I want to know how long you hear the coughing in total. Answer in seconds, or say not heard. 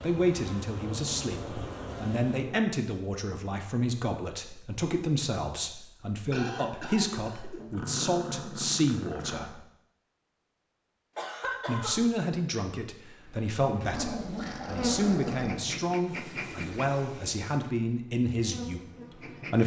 2 s.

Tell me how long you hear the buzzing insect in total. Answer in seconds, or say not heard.
9 s.